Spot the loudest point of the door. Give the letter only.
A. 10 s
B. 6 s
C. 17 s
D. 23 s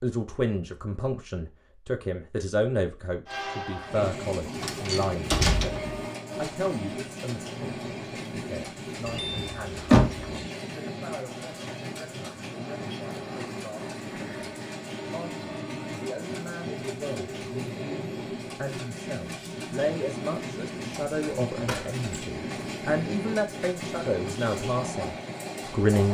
A.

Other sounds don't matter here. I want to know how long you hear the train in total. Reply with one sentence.
The train can be heard for 23 seconds in total.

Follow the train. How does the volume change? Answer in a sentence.
The loudness of the train stays about the same.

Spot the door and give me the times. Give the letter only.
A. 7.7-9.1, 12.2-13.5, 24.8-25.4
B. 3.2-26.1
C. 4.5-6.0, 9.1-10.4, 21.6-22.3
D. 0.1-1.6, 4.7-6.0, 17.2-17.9
C.